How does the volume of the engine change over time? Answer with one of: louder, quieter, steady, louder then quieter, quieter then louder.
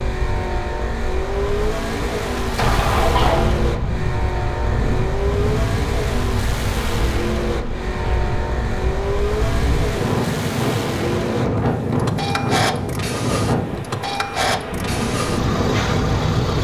steady.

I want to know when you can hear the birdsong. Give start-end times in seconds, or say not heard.
not heard.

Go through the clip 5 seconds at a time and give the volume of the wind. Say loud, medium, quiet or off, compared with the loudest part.
medium, medium, loud, loud.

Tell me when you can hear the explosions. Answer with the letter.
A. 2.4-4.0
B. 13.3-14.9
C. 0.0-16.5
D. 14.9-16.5
A.